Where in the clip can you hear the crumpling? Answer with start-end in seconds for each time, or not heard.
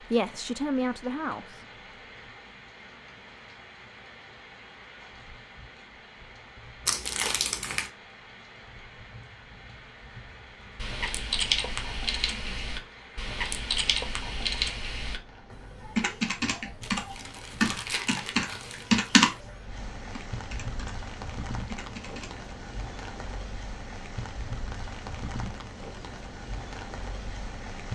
6.8-7.9, 16.8-19.3.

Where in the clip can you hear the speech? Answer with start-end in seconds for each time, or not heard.
0.0-1.8.